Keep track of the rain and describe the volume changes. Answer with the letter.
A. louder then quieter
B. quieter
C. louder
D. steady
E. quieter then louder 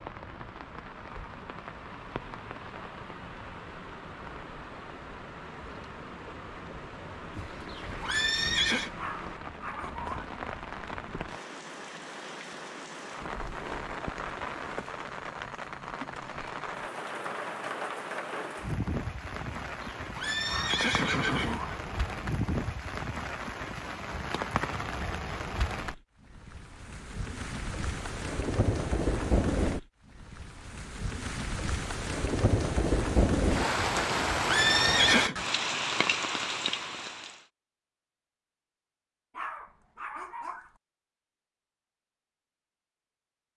C.